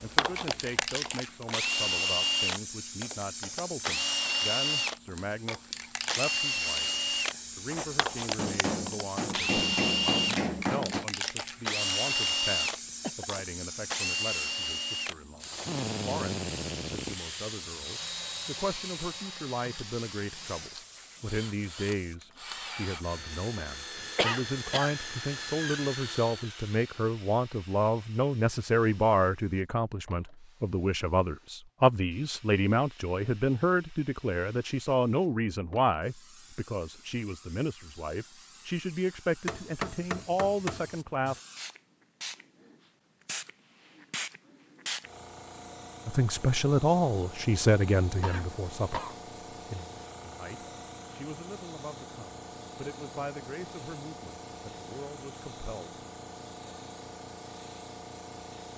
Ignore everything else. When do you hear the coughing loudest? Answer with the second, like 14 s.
24 s.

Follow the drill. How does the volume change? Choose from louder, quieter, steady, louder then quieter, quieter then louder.
quieter.